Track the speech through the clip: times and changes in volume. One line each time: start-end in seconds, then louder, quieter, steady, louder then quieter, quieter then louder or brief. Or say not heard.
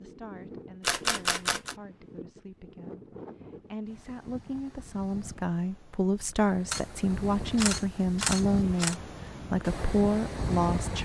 0.0-11.0 louder.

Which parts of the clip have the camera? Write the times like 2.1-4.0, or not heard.
0.8-1.8, 6.7-8.9.